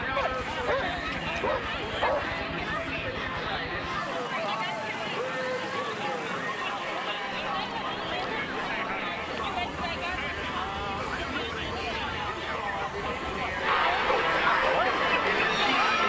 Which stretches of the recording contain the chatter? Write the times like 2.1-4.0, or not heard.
0.0-16.0.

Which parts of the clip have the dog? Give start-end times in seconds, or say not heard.
0.1-2.4.